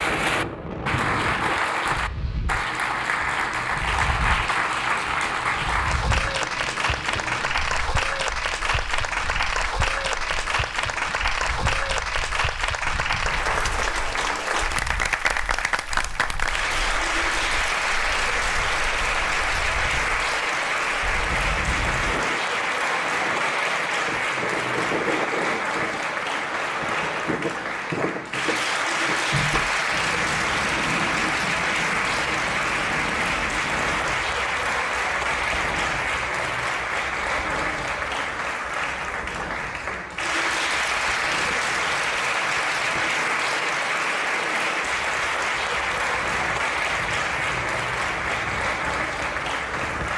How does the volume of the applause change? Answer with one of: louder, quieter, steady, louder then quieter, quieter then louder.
steady.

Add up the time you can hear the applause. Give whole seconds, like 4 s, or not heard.
50 s.